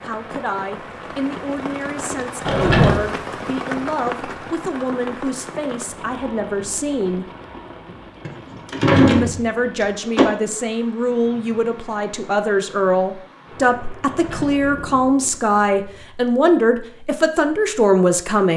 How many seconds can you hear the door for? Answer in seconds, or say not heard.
4 s.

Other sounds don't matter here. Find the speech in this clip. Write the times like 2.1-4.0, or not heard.
0.0-7.2, 9.0-18.5.